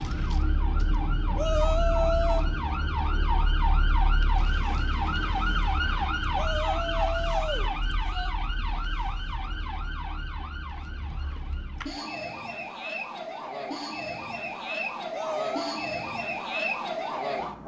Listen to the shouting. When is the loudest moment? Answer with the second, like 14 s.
2 s.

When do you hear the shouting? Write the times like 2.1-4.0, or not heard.
1.4-2.5, 6.3-8.3, 15.1-15.8.